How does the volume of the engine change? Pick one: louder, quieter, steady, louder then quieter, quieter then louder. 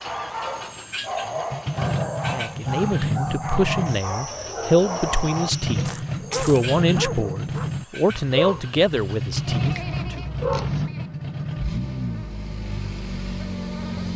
steady.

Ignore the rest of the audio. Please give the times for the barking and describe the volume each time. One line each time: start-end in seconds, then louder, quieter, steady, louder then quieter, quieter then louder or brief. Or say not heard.
0.0-10.9 steady.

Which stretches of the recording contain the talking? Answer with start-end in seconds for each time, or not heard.
2.3-10.2.